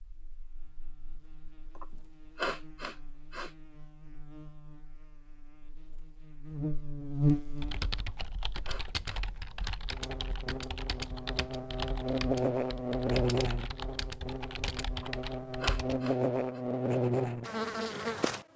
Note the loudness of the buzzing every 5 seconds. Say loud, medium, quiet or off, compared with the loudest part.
quiet, loud, loud, loud.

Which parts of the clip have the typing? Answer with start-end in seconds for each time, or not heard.
7.5-16.1.